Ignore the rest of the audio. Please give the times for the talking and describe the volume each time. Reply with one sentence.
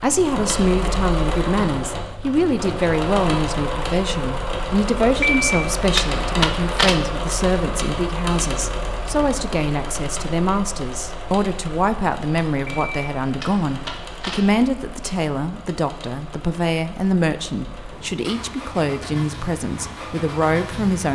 You can hear the talking from 0.0 to 21.1 s, at a steady volume.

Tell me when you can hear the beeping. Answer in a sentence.
You can hear the beeping from 5.2 to 7.0 s and from 12.7 to 14.4 s.